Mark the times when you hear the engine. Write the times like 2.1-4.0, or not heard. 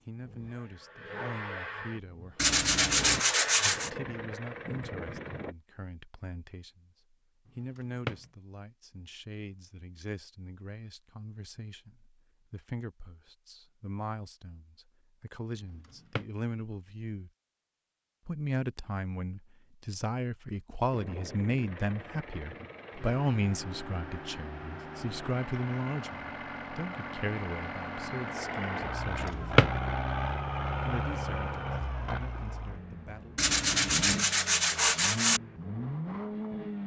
0.0-5.5, 20.9-36.8.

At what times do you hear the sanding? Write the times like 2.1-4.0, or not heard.
2.4-3.9, 33.4-35.4.